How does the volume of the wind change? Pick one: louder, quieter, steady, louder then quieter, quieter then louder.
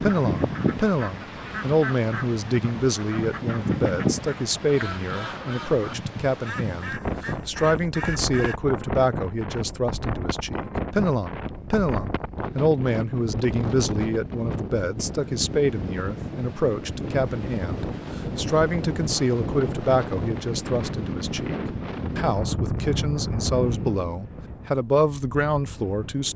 steady.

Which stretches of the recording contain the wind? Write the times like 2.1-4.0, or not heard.
0.0-26.3.